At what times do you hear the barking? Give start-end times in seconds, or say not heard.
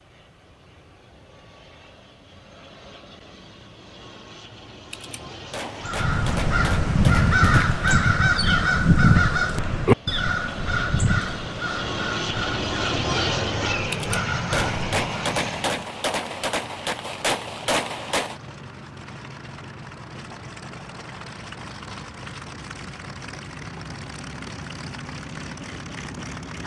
not heard.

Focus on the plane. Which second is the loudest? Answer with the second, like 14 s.
13 s.